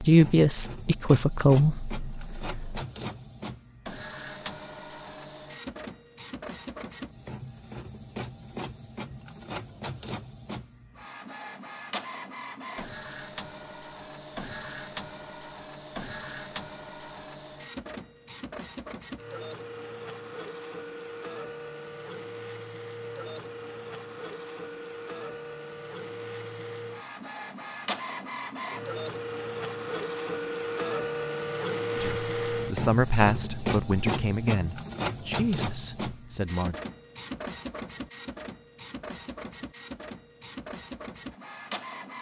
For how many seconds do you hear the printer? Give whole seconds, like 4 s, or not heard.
42 s.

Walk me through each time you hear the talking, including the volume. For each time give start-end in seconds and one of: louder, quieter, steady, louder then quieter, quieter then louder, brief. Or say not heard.
0.0-2.8 brief
31.9-36.8 quieter.